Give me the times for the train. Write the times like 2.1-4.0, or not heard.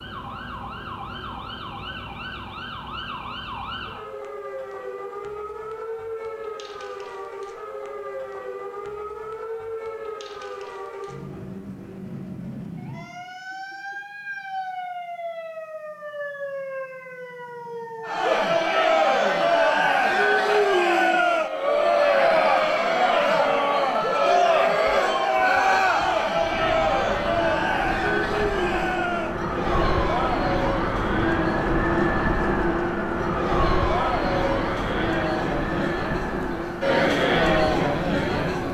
not heard.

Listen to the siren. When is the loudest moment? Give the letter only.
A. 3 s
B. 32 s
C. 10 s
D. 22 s
B.